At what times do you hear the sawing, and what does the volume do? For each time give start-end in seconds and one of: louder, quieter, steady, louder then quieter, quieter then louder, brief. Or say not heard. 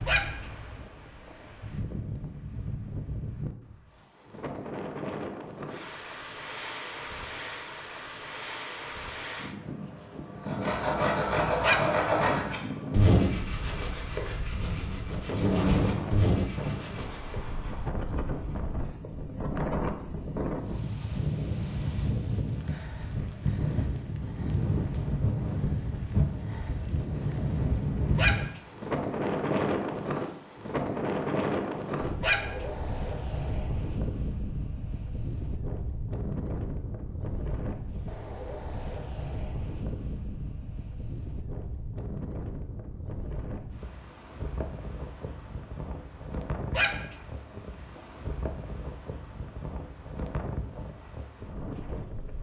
10.4-17.5 quieter then louder.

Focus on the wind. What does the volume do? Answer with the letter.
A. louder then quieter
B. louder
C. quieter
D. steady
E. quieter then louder
A.